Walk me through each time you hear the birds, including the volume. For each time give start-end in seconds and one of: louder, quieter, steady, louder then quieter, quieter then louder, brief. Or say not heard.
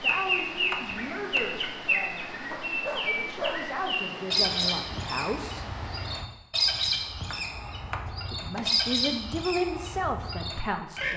0.0-11.1 steady.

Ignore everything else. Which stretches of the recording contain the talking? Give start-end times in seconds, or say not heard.
0.0-5.7, 8.3-11.1.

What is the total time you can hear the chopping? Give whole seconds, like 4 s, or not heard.
3 s.